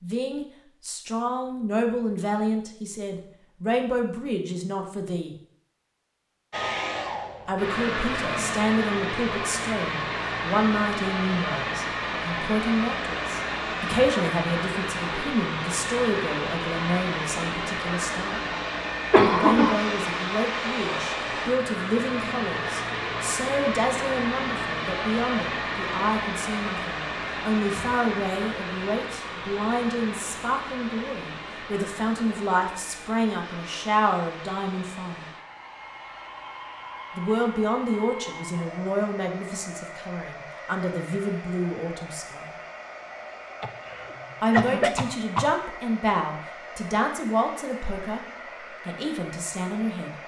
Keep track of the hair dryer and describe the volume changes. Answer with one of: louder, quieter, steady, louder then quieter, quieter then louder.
quieter.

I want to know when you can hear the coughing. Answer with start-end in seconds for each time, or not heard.
19.1-19.8, 43.6-45.5.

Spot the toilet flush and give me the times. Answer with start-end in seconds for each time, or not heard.
not heard.